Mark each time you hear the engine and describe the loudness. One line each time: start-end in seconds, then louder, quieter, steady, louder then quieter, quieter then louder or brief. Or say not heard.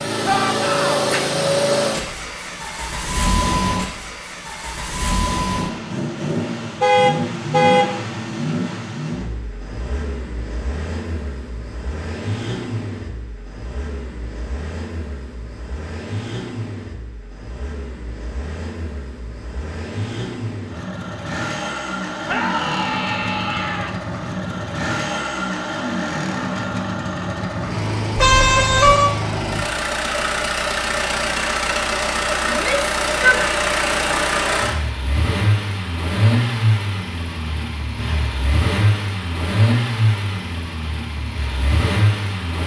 0.0-42.6 quieter then louder.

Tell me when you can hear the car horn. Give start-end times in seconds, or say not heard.
6.8-7.8, 28.1-29.1.